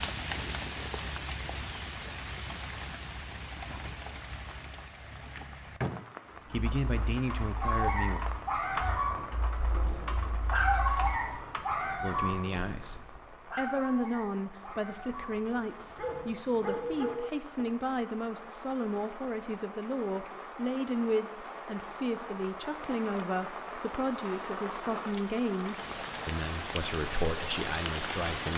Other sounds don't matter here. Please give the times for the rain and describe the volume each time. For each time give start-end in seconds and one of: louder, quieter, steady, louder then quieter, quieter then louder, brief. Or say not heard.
0.0-28.5 quieter then louder.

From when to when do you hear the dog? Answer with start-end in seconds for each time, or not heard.
7.6-17.6.